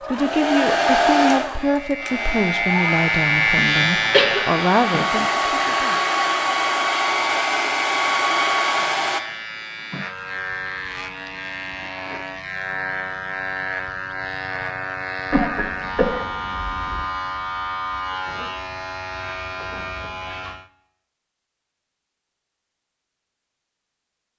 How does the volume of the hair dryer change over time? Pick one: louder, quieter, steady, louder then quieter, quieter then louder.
quieter then louder.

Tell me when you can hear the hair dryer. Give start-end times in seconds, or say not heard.
0.0-9.2.